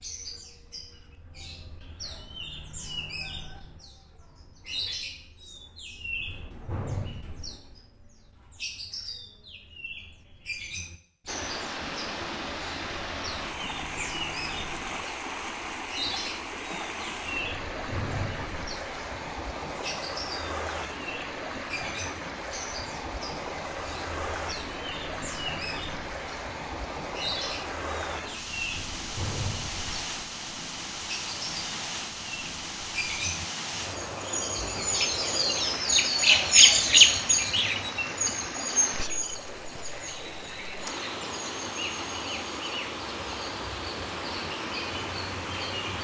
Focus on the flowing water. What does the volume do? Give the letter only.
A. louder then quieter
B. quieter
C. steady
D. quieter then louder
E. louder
C.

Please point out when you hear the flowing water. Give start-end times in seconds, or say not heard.
11.2-45.9.